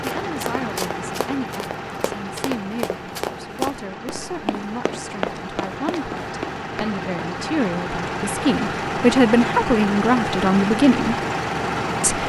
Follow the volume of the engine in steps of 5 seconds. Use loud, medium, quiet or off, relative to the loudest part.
medium, loud, loud.